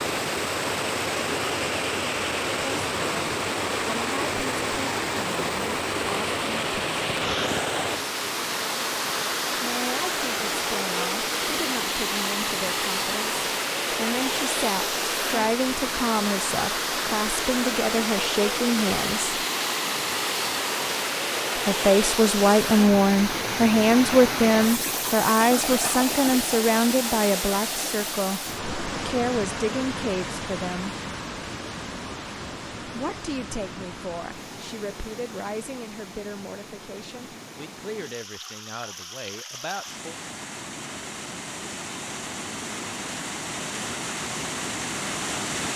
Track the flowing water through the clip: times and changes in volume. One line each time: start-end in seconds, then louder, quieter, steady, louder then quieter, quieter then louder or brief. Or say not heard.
0.0-45.7 quieter.